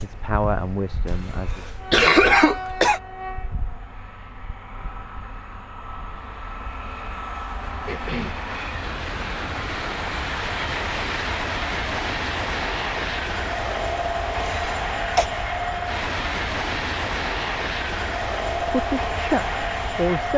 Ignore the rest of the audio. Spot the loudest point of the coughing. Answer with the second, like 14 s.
2 s.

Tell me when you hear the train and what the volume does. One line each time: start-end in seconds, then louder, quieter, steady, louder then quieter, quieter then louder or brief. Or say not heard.
0.0-20.3 louder.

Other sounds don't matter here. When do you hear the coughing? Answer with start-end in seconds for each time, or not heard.
1.9-3.0, 7.8-8.4, 14.3-15.3.